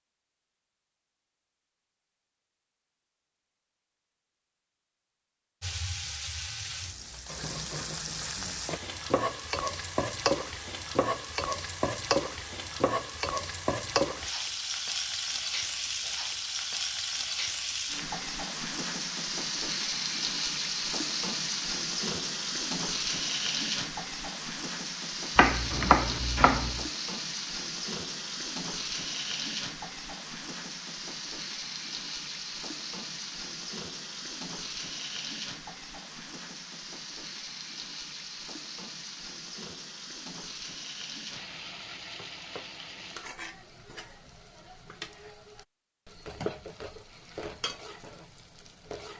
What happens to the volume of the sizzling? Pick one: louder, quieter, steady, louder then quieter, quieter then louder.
quieter.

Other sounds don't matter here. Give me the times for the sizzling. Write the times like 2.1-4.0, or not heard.
5.6-49.1.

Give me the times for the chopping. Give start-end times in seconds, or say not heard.
25.4-26.9.